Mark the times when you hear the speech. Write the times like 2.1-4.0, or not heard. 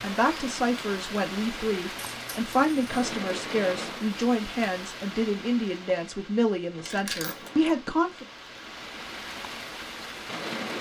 0.0-8.2.